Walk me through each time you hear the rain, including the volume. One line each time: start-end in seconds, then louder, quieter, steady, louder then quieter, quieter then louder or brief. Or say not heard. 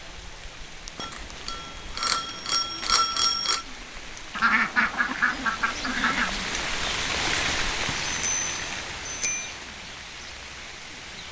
0.0-11.2 louder then quieter.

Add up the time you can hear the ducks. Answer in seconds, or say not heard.
2 s.